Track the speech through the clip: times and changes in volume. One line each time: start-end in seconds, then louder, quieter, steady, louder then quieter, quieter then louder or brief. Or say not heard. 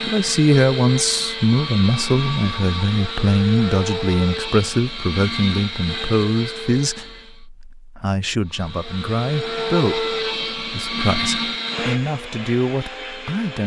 0.1-13.6 quieter.